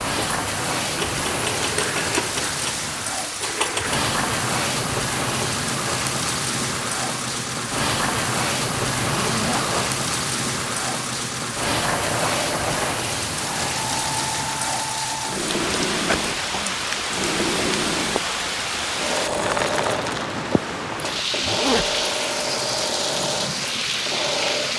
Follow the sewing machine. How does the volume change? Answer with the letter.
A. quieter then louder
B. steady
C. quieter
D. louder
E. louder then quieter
B.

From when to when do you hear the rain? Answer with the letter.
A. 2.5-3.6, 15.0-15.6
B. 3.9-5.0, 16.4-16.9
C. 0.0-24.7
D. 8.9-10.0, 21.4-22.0
C.